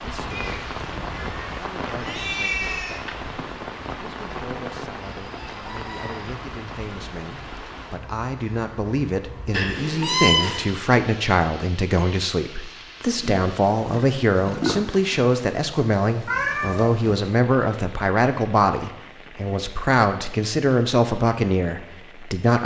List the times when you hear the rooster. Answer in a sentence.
The rooster can be heard from 5.2 to 6.3 s.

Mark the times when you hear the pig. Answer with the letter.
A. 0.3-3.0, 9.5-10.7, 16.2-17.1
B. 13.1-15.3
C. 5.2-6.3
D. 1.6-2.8
B.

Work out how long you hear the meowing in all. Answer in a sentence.
You can hear the meowing for 5 seconds altogether.